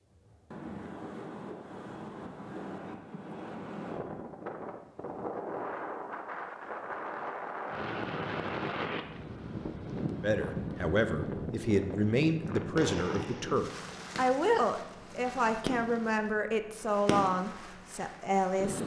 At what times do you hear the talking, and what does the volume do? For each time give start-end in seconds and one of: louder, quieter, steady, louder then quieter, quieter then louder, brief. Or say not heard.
10.2-18.8 steady.